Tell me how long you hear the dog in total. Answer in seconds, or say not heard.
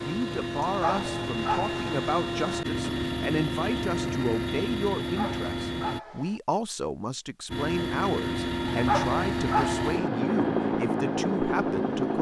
4 s.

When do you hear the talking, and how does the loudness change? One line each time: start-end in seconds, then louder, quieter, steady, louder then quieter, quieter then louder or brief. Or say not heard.
0.1-12.1 steady.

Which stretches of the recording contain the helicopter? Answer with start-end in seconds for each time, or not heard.
0.0-6.0, 7.5-12.1.